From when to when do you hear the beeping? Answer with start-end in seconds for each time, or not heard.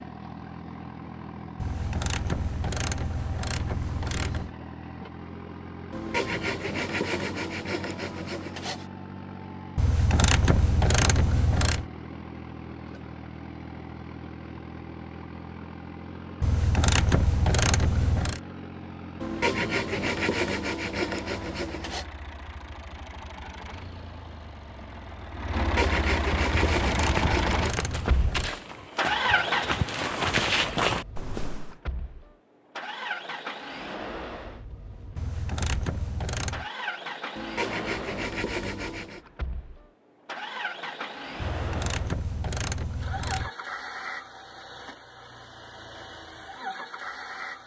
not heard.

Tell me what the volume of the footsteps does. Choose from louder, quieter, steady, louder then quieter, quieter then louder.
louder.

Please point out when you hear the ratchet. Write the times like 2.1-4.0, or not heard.
1.6-4.5, 9.8-11.8, 16.4-18.4, 26.8-28.6, 35.1-36.7, 41.4-43.5.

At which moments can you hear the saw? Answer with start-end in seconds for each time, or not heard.
5.9-8.8, 19.2-22.1, 25.6-27.9, 37.4-39.2.